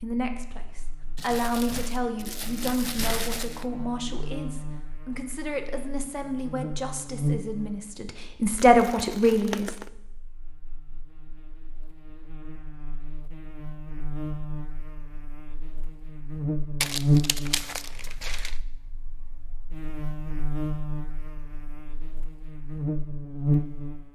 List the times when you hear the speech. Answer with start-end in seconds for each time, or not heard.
0.0-9.7.